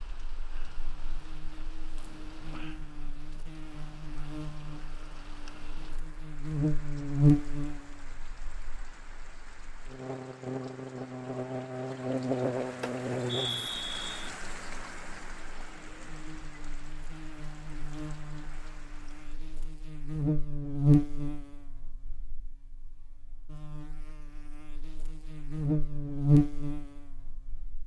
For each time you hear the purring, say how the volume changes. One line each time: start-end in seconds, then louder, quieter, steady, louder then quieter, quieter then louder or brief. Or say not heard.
not heard.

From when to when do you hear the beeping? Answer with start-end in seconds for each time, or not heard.
12.8-14.1.